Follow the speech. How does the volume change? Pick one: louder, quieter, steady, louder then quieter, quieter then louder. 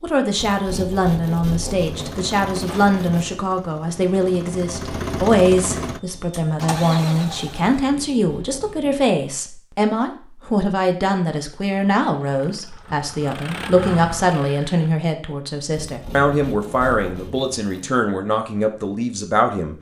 steady.